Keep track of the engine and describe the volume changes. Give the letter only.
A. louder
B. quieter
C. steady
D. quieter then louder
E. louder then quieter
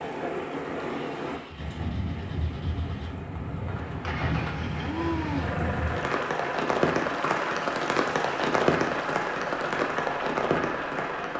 A.